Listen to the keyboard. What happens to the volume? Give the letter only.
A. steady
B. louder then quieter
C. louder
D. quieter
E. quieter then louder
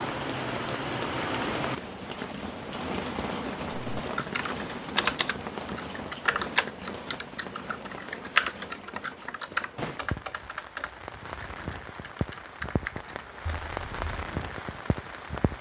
D.